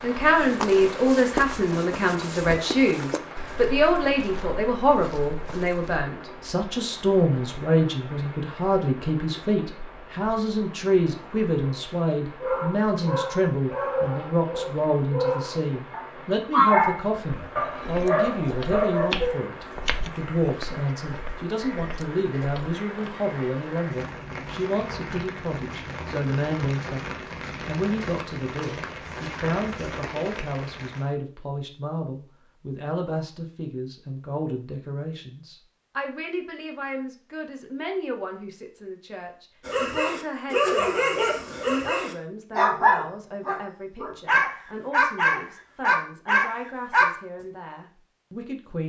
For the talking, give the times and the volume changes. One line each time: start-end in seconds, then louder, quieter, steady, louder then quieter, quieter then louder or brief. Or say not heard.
0.0-48.8 quieter.